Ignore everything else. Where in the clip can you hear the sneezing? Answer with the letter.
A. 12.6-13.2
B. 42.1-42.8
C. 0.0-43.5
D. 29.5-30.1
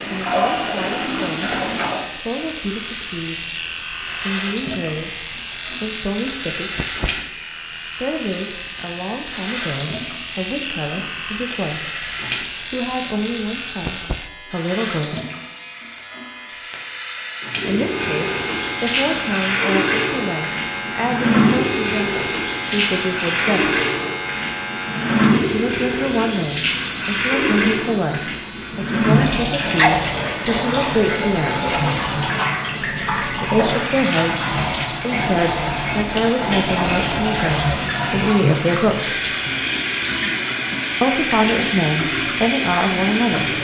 D.